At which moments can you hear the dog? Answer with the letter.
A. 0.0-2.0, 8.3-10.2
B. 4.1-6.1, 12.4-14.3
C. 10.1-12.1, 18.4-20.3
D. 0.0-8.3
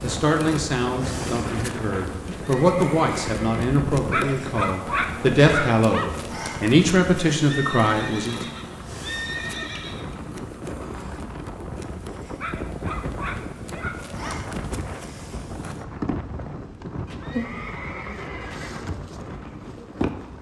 B.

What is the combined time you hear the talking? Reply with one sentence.
You can hear the talking for 8 seconds altogether.